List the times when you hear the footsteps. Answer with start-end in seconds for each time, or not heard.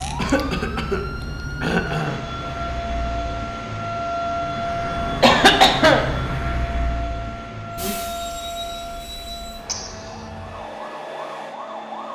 not heard.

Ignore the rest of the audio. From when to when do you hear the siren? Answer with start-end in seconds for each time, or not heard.
0.0-12.0.